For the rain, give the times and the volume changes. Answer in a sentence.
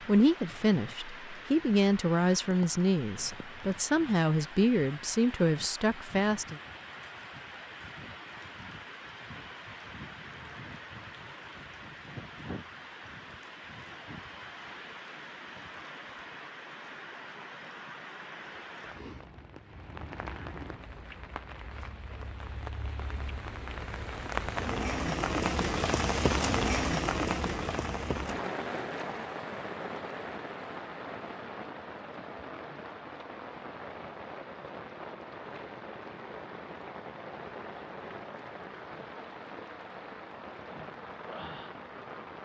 The rain can be heard from 0.0 to 42.3 s, getting louder then quieter.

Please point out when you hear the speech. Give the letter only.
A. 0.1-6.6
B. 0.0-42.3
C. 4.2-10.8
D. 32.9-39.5
A.